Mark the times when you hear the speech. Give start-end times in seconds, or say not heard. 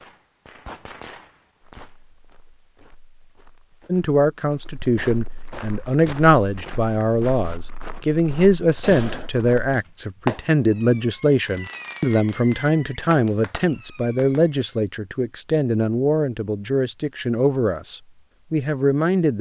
3.9-19.3.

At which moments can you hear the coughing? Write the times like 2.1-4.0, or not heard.
not heard.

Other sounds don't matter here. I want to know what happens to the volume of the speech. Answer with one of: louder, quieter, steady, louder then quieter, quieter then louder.
steady.